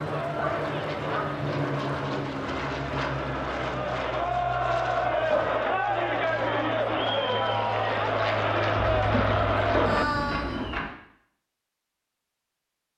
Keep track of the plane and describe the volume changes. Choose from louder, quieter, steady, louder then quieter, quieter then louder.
quieter then louder.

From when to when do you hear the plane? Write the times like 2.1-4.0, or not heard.
0.0-10.9.